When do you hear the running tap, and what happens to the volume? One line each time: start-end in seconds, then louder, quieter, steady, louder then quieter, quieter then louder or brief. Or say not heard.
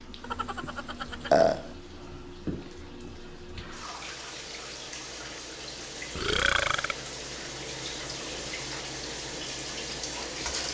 0.0-10.6 louder.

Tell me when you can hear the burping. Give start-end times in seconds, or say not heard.
0.2-1.7, 6.2-7.0.